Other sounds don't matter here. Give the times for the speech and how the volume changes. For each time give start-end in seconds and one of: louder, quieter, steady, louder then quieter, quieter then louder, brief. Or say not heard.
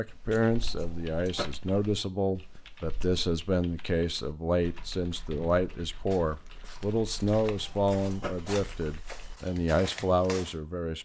0.0-11.0 steady.